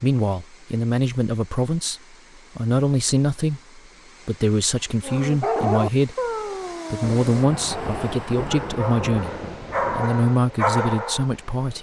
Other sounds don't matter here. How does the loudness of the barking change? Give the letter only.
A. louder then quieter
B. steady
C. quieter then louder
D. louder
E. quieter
C.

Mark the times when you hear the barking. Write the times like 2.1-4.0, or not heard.
5.0-11.3.